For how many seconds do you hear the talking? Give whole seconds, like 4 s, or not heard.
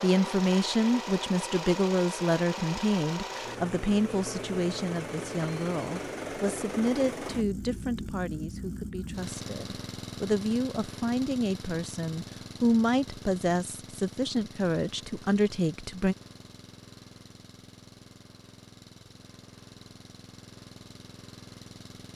16 s.